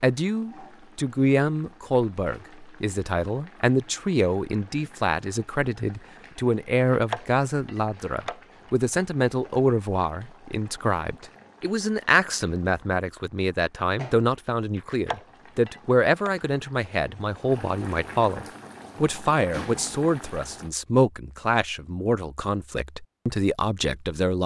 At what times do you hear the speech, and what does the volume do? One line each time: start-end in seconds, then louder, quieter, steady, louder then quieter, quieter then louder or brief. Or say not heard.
0.0-24.4 steady.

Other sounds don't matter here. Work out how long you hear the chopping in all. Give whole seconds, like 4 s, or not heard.
3 s.